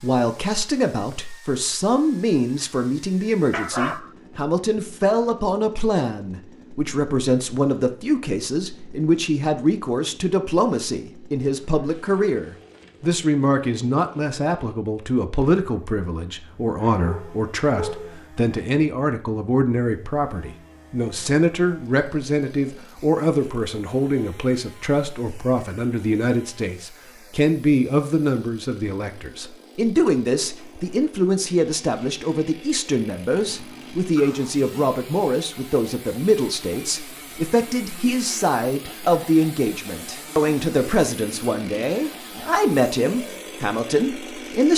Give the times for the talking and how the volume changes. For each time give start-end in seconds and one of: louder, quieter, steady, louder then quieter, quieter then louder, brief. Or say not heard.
0.0-44.7 steady.